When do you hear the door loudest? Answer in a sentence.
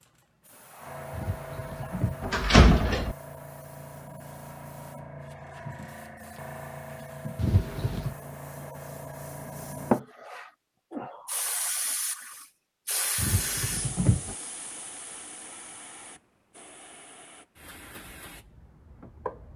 The loudest moment of the door is at 3 seconds.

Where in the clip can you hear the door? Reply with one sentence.
The door can be heard from 1.1 to 3.1 s, from 7.3 to 8.2 s and from 13.2 to 14.3 s.